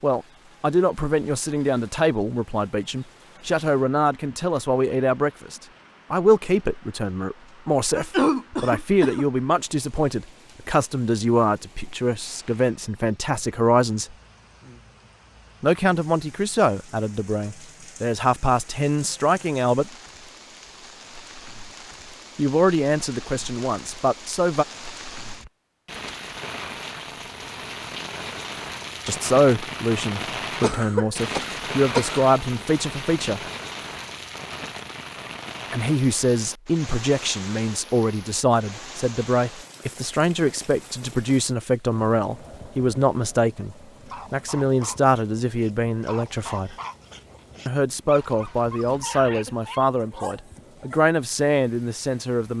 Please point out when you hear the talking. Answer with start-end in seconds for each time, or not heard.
0.0-14.2, 15.6-19.9, 22.4-24.6, 29.1-33.4, 35.7-46.8, 47.6-52.5.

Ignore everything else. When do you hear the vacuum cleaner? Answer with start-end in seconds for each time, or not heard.
not heard.